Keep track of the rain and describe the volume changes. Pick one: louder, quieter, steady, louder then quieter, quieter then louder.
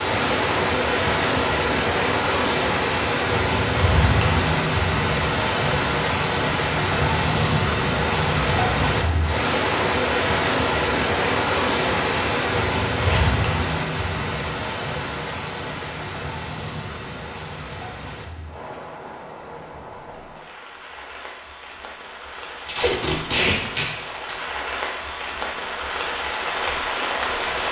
quieter then louder.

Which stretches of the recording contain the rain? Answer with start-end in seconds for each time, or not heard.
0.0-27.6.